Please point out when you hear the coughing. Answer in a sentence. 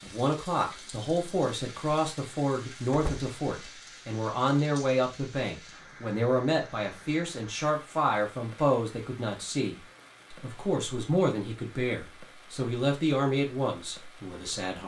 The coughing can't be heard in this clip.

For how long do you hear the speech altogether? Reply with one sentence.
You can hear the speech for 15 seconds altogether.